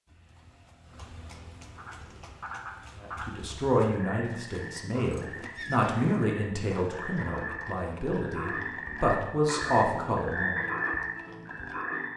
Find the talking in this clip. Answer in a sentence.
The talking can be heard from 3.0 to 10.7 s.